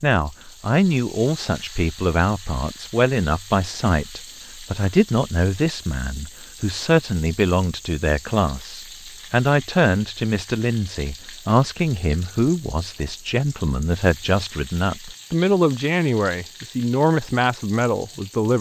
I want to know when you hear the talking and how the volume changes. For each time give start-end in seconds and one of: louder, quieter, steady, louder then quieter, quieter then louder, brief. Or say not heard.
0.0-18.5 steady.